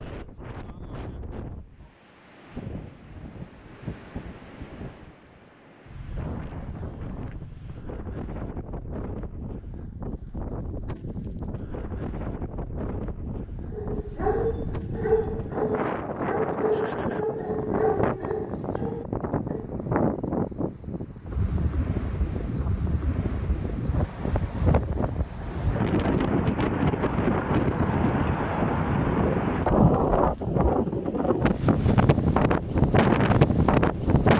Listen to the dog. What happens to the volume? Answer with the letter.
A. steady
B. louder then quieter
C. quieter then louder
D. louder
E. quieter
E.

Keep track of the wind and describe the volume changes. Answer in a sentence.
The volume of the wind goes up.